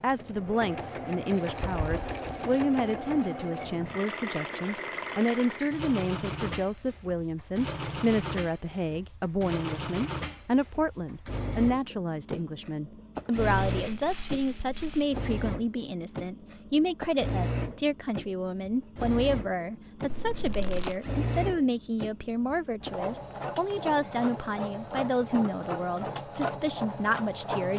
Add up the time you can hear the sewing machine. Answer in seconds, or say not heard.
28 s.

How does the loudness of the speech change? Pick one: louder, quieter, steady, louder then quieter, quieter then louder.
steady.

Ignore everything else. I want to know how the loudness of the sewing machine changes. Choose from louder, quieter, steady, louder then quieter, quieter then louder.
steady.